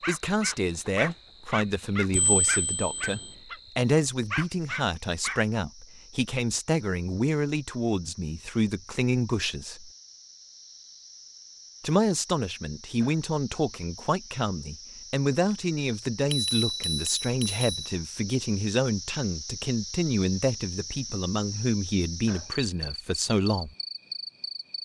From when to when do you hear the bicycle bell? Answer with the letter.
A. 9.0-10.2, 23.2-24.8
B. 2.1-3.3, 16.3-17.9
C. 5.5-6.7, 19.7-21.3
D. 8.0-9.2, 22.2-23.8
B.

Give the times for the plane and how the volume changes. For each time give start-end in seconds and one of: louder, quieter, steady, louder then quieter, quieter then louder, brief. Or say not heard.
not heard.